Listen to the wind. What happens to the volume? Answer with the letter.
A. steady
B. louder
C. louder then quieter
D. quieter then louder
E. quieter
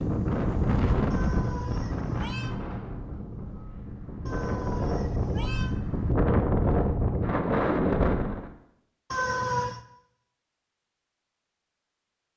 D.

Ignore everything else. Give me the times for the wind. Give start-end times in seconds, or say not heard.
0.0-8.5.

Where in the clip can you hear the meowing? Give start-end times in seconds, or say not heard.
1.1-2.5, 4.2-5.8, 9.1-9.8.